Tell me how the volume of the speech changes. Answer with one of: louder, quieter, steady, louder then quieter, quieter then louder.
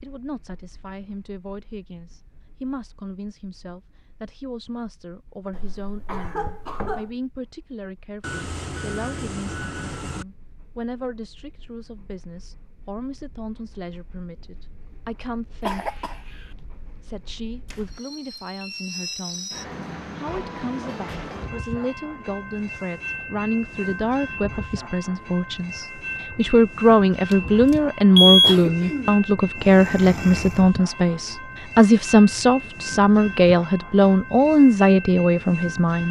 louder.